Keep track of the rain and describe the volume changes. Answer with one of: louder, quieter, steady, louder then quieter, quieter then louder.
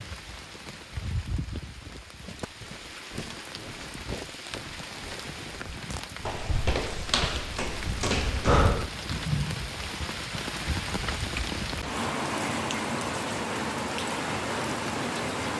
louder.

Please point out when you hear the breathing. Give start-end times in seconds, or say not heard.
8.4-8.9.